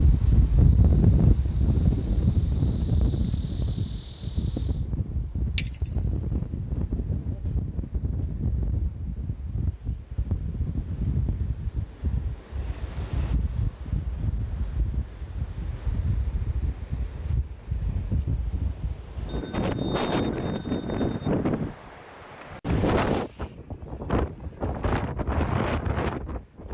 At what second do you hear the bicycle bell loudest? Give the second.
6 s.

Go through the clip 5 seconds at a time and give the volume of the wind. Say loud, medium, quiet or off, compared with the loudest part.
loud, medium, medium, medium, loud, loud.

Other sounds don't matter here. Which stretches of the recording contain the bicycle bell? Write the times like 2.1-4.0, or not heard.
5.5-6.3, 19.2-21.3.